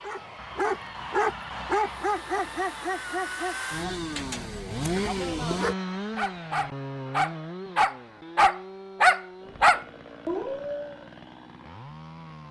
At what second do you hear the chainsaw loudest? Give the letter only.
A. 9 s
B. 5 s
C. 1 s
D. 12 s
B.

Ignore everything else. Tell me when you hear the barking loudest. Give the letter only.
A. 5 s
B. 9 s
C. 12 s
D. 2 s
B.